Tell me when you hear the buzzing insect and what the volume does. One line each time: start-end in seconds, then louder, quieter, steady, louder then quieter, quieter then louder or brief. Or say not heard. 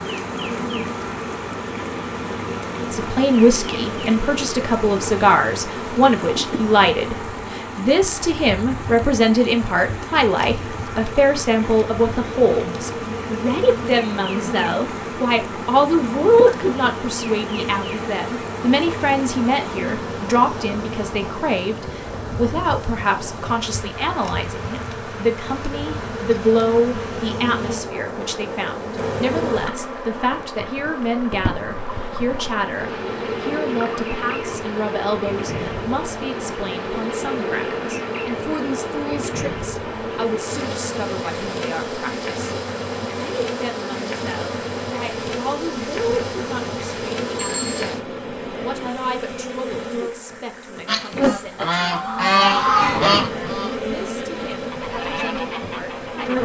0.0-56.4 steady.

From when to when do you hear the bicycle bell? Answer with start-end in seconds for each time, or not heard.
47.4-48.0.